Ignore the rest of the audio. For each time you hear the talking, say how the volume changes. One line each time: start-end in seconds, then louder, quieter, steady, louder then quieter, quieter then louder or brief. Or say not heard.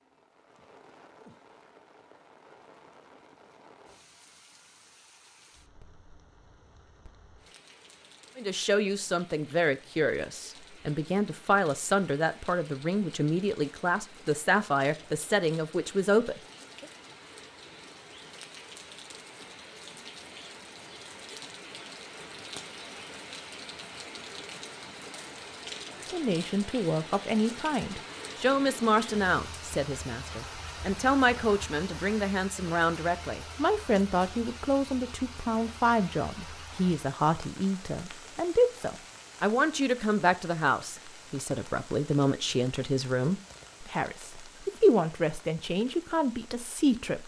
8.3-16.9 steady
26.1-47.2 steady.